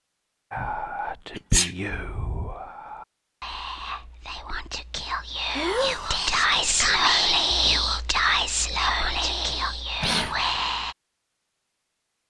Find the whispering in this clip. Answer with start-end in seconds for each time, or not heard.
0.5-10.9.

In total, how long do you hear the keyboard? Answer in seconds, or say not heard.
not heard.